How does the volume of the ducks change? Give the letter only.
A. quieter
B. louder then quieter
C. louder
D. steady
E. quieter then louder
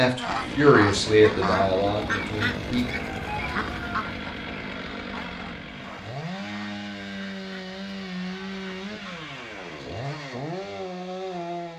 A.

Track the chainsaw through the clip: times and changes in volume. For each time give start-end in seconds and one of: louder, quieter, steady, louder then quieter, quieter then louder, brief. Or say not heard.
0.1-11.7 steady.